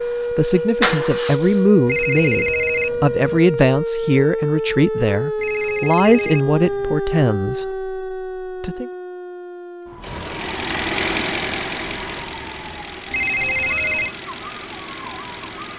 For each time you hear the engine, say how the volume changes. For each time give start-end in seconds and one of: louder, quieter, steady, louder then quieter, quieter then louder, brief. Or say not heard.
0.0-2.9 brief
10.0-15.7 quieter.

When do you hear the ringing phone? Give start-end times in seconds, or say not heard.
1.9-3.4, 5.3-7.0, 13.1-14.2.